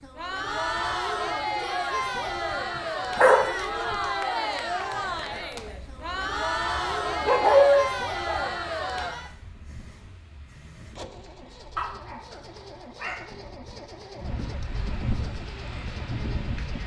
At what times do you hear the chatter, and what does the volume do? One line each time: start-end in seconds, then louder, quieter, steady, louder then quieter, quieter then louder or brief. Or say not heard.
0.0-9.3 steady.